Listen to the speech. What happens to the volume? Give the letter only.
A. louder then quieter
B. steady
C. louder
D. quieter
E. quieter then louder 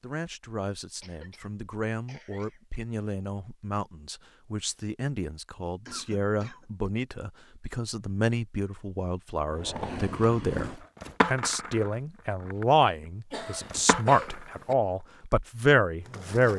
C.